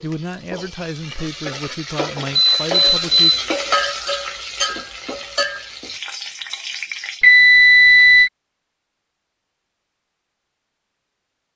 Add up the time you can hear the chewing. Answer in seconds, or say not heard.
not heard.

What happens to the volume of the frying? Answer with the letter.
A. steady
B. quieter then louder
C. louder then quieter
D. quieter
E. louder
C.